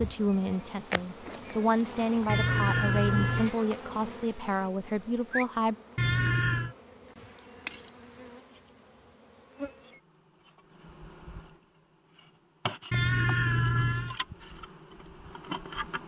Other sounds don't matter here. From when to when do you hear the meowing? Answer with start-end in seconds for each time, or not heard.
2.2-3.5, 6.0-6.8, 12.9-14.2.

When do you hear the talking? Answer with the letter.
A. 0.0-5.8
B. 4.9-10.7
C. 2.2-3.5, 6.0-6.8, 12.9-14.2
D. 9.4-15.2
A.